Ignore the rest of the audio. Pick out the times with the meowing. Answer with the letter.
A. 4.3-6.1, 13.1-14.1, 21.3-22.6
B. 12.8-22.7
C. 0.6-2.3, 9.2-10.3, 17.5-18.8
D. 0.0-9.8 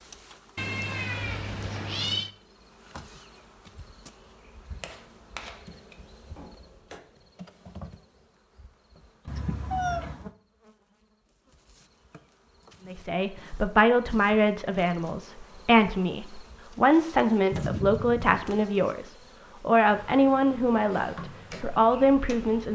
C.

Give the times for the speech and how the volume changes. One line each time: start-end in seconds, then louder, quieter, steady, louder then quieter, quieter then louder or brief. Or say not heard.
12.8-22.7 steady.